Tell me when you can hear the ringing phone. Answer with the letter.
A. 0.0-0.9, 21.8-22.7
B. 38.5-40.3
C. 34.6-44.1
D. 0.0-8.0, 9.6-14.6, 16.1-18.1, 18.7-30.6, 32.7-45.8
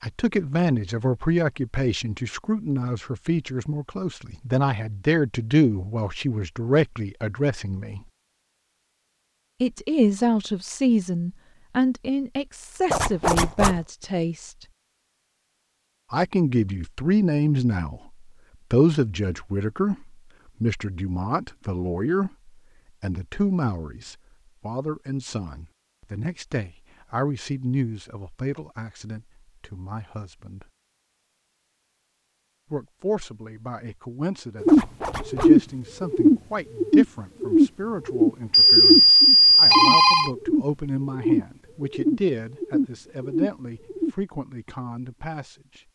B.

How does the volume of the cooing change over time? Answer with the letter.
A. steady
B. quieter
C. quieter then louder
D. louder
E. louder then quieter
B.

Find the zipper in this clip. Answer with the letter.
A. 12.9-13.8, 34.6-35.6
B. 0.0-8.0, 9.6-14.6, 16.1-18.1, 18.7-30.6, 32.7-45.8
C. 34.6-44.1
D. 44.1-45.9
A.